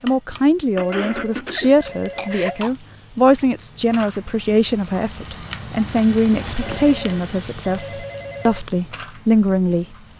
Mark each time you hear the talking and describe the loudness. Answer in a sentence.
You can hear the talking from 0.0 to 9.8 s, at a steady volume.